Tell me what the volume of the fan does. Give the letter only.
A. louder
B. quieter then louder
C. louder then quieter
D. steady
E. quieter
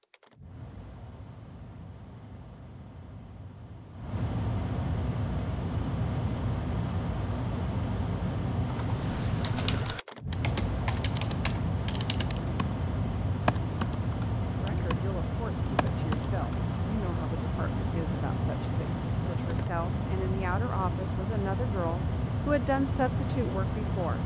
A.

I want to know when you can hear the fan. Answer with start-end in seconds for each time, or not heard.
0.0-24.2.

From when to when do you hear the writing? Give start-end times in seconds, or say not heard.
not heard.